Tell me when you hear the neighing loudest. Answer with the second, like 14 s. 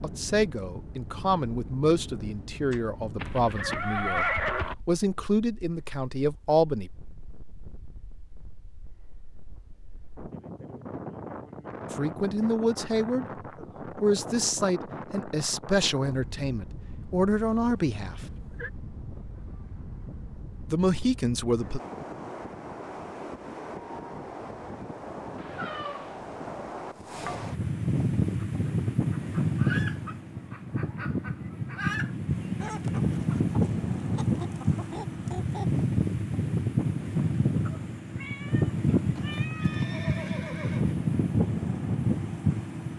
4 s.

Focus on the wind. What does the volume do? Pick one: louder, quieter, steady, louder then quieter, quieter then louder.
louder.